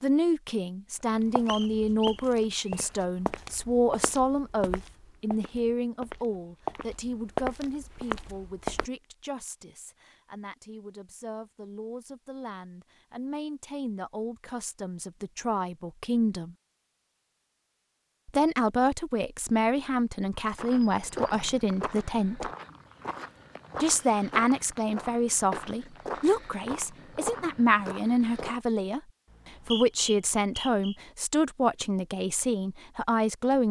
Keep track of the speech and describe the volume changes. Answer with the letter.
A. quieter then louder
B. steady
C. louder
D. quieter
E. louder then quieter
A.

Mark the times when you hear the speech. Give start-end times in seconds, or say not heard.
0.0-16.6, 18.2-22.5, 23.8-33.6.